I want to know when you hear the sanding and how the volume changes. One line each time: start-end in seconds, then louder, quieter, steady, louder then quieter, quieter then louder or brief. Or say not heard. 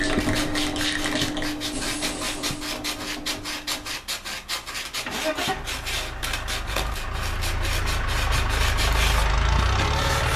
0.0-10.3 steady.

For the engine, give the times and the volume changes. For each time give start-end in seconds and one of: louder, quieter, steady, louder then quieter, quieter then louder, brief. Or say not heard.
0.0-10.3 quieter then louder.